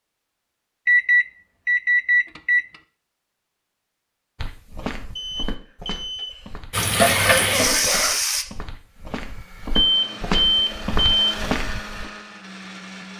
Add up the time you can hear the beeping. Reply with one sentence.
The beeping can be heard for 5 seconds in total.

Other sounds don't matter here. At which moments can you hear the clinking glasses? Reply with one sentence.
You can't hear the clinking glasses here.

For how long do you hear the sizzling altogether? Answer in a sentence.
The sizzling can be heard for 2 seconds in total.